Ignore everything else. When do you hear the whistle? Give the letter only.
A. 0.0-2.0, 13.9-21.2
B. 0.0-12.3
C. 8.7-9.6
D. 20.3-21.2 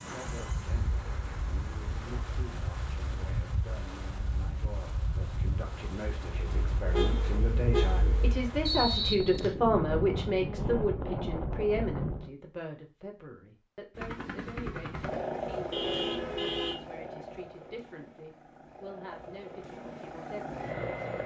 C.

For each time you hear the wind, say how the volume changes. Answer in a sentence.
You can hear the wind from 0.0 to 12.3 s, getting louder.